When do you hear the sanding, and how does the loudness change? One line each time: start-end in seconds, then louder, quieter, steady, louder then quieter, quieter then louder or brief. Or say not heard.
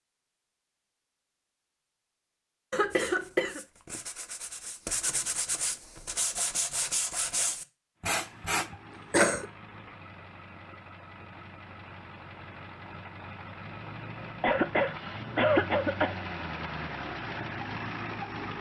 2.9-8.7 louder.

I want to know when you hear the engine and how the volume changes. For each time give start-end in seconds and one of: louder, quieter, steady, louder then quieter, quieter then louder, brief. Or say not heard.
8.0-18.5 louder.